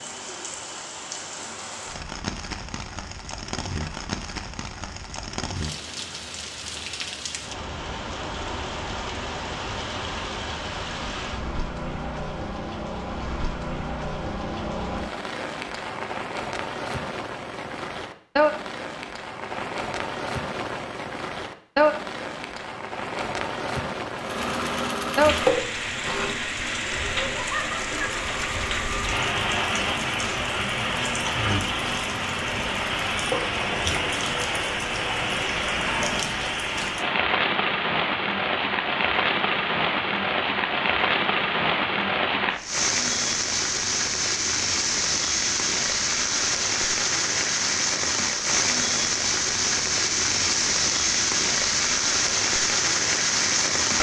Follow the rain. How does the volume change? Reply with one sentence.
The loudness of the rain goes up.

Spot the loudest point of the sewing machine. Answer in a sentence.
The volume of the sewing machine peaks at 25 seconds.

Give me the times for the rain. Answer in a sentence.
You can hear the rain from 0.0 to 53.9 s.